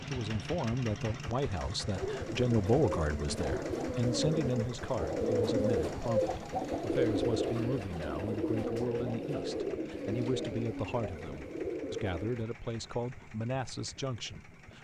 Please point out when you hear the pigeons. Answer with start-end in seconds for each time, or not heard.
1.9-12.4.